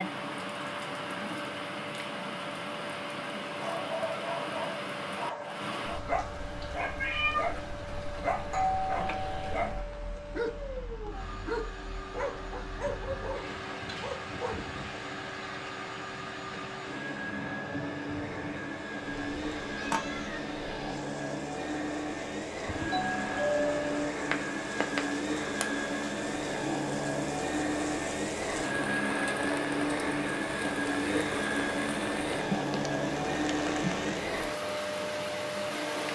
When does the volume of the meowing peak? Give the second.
7 s.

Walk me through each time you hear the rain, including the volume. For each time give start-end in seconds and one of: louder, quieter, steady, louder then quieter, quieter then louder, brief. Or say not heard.
0.0-36.0 quieter then louder.